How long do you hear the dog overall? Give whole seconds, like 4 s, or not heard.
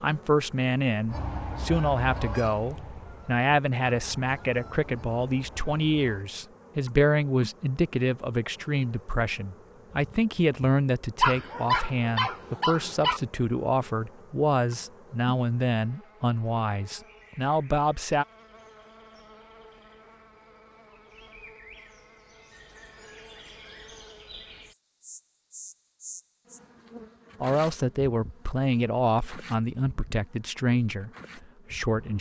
2 s.